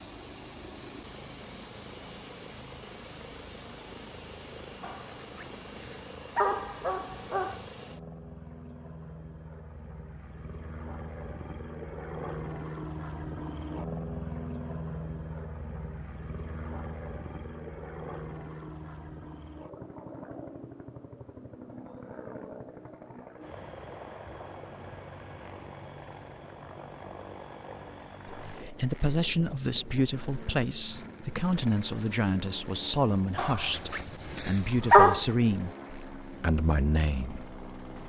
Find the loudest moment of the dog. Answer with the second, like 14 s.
35 s.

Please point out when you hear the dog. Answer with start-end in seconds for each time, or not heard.
4.8-7.7, 33.4-35.2.